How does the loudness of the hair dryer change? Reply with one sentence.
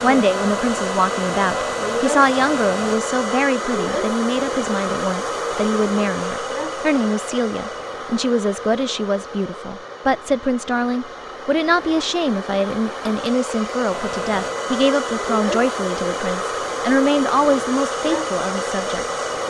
The volume of the hair dryer goes down, then up.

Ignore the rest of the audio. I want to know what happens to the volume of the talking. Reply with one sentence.
The loudness of the talking stays about the same.